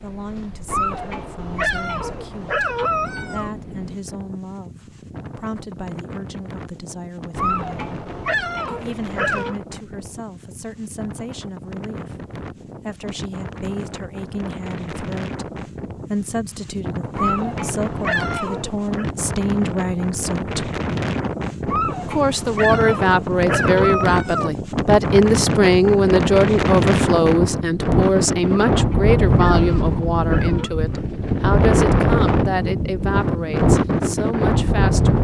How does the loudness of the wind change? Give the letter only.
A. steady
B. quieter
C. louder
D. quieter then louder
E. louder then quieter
C.